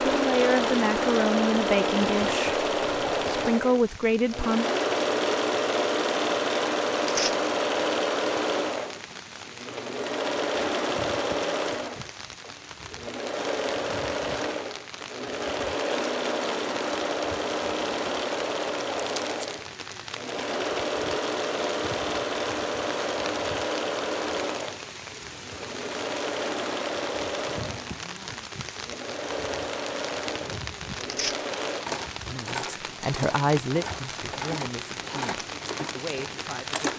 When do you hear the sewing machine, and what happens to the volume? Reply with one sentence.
You can hear the sewing machine from 0.0 to 36.9 s, getting quieter.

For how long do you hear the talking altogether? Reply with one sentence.
The talking can be heard for 9 seconds in total.